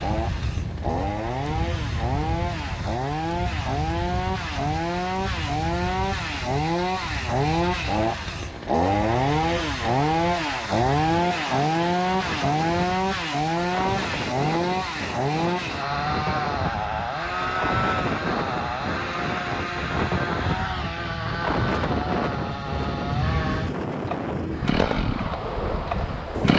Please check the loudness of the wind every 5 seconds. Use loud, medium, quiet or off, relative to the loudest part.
medium, medium, medium, loud, loud, loud.